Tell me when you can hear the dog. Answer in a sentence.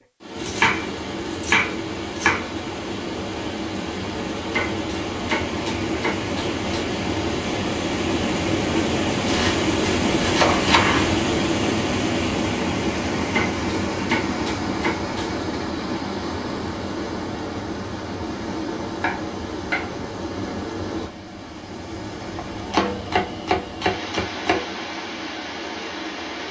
The dog can't be heard in this clip.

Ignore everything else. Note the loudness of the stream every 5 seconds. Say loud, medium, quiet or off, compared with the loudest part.
medium, loud, loud, medium, medium, medium.